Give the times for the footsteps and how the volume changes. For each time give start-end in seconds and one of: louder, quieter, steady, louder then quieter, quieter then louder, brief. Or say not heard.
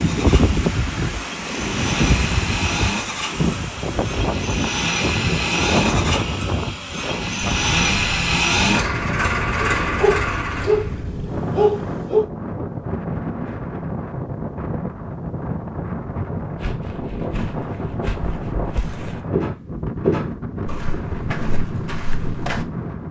16.6-22.6 louder then quieter.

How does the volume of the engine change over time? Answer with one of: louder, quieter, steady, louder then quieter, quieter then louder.
louder.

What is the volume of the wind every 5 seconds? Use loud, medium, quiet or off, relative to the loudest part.
loud, loud, medium, medium, medium.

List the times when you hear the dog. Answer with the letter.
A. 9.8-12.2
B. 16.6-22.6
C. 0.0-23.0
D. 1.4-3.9
A.